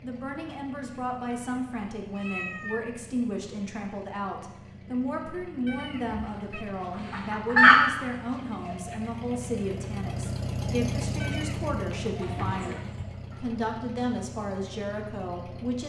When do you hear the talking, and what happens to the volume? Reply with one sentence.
The talking can be heard from 0.0 to 15.8 s, at a steady volume.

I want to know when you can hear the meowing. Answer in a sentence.
You can hear the meowing from 1.2 to 2.9 s, from 5.7 to 6.7 s and from 11.2 to 11.8 s.